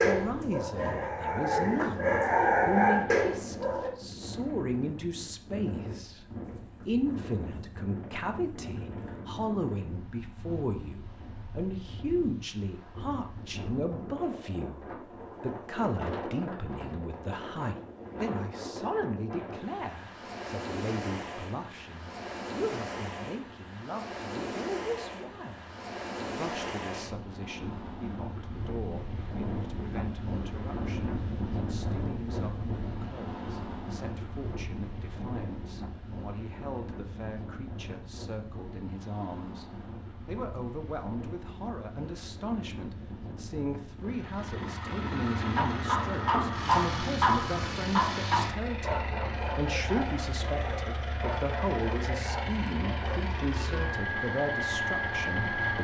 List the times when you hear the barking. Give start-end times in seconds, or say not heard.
0.0-3.9, 45.5-53.1.